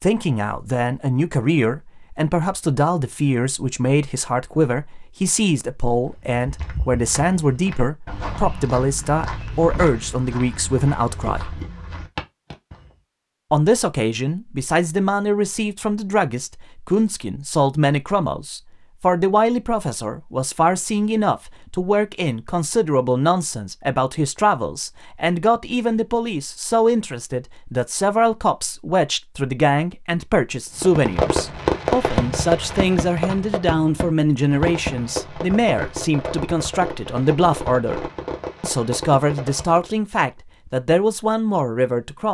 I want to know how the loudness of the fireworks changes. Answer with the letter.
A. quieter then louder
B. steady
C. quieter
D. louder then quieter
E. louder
C.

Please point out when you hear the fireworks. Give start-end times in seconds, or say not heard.
30.8-39.9.